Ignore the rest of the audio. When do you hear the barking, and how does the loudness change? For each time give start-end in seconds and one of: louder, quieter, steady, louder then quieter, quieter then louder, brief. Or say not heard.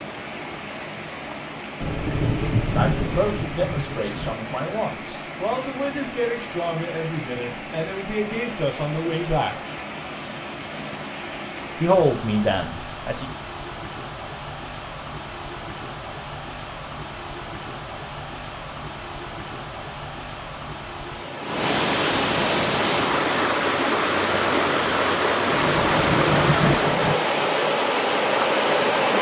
not heard.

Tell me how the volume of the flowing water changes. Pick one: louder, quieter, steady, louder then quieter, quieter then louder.
louder.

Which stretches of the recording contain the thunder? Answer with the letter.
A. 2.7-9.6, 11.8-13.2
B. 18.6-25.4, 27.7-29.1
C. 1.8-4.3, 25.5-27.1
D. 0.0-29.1
C.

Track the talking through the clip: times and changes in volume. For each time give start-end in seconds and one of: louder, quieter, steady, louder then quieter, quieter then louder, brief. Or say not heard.
2.7-9.6 steady
11.8-13.2 brief.